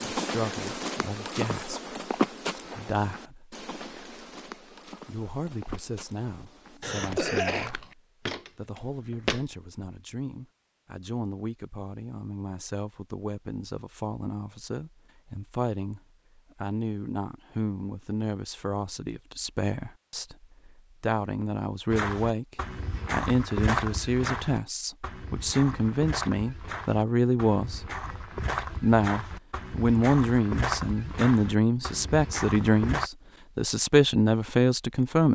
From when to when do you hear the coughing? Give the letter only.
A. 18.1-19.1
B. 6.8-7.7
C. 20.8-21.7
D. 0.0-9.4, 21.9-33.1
B.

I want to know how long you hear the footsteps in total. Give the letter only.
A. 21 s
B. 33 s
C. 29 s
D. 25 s
A.